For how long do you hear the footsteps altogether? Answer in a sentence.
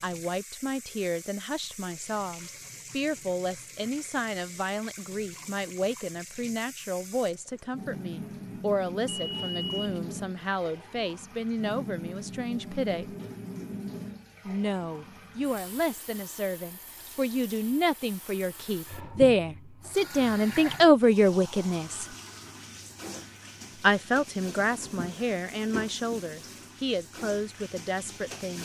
The footsteps can't be heard in this clip.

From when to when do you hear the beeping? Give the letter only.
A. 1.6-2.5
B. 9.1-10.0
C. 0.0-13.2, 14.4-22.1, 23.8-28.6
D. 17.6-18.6
B.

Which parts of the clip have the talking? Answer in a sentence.
You can hear the talking from 0.0 to 13.2 s, from 14.4 to 22.1 s and from 23.8 to 28.6 s.